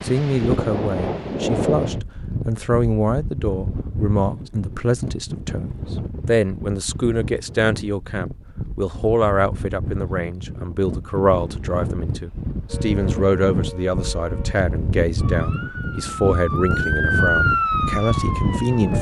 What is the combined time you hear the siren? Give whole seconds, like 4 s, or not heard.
6 s.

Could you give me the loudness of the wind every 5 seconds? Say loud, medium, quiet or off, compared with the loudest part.
loud, medium, loud, loud.